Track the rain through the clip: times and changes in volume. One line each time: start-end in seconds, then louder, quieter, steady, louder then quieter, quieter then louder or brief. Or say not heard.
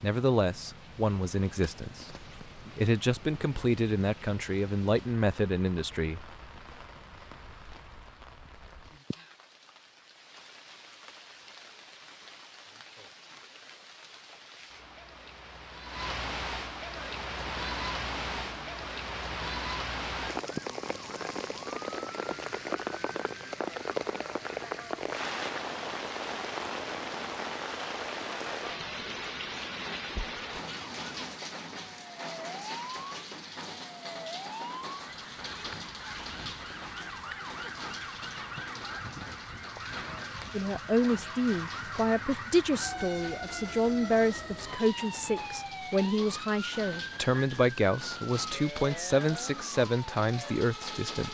0.0-51.2 louder then quieter.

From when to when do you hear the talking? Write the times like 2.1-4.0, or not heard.
0.0-6.3, 40.5-51.2.